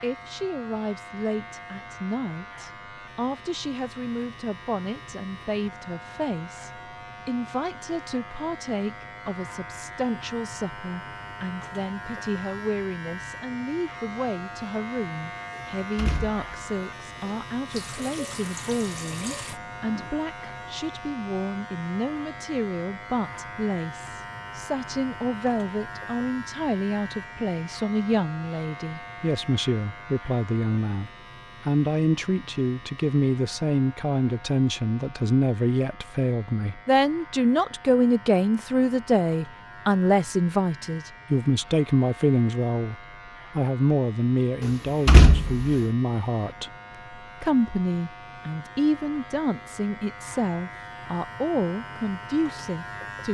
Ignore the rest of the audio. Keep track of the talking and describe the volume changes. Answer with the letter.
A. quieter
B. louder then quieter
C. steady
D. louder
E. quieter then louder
D.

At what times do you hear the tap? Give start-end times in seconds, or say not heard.
17.6-20.1.